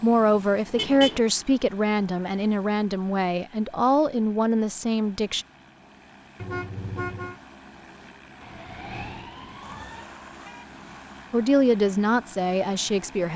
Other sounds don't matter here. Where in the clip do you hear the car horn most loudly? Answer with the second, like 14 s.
1 s.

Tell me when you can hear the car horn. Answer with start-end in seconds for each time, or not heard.
0.8-1.2, 6.4-7.3, 9.6-11.2.